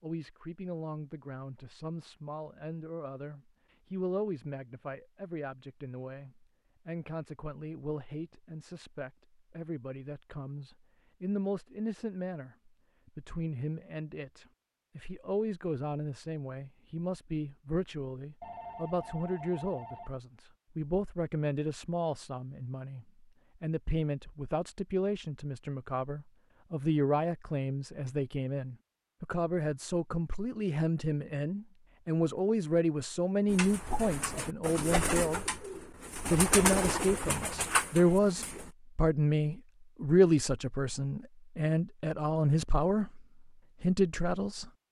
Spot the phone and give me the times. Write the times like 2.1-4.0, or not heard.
18.4-20.2.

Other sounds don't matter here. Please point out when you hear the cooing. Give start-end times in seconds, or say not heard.
33.5-38.7.